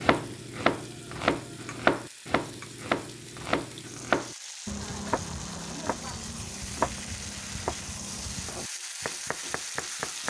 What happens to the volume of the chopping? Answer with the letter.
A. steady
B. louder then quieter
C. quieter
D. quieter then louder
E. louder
C.